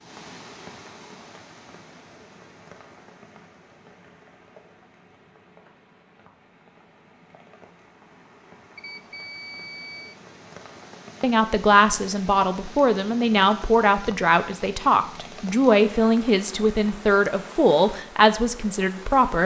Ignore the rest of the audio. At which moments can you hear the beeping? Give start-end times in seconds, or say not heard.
8.8-10.2.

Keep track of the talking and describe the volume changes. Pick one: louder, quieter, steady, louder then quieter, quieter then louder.
steady.